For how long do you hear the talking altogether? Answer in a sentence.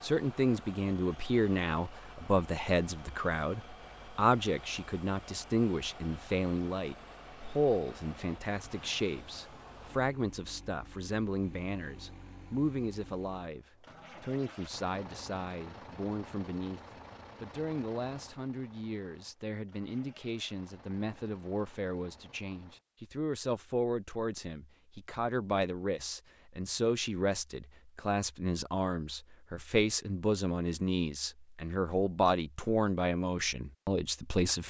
You can hear the talking for 34 seconds altogether.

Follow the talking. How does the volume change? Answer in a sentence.
The loudness of the talking goes down, then up.